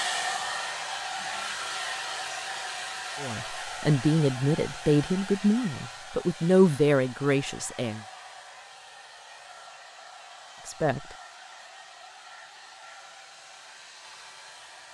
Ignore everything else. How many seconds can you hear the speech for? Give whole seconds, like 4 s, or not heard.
5 s.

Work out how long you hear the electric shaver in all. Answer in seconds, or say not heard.
not heard.